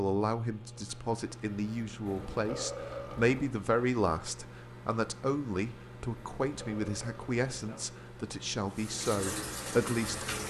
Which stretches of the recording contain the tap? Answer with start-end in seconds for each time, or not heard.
8.7-10.4.